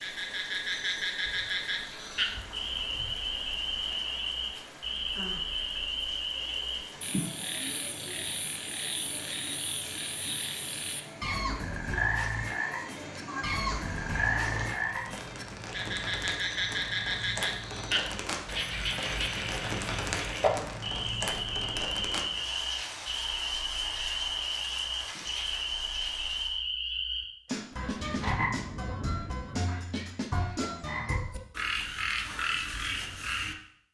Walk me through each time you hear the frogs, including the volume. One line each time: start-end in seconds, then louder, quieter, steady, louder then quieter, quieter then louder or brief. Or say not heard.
0.0-33.8 steady.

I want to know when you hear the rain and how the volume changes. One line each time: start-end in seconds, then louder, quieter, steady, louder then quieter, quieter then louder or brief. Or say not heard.
0.0-26.6 louder.